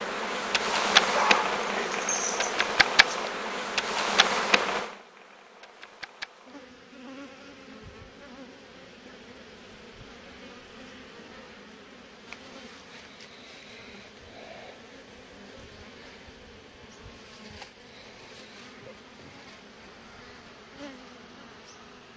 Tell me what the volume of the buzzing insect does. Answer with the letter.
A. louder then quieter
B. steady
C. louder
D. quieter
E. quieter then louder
D.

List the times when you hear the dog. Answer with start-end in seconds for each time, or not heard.
1.1-3.1.